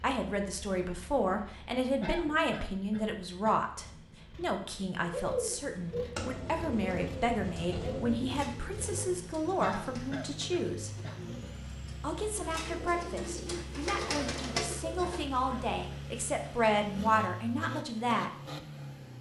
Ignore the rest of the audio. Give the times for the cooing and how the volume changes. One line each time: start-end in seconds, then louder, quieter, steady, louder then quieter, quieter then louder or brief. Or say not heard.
5.0-15.2 quieter then louder.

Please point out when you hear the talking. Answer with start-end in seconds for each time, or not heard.
0.0-10.9, 12.0-18.3.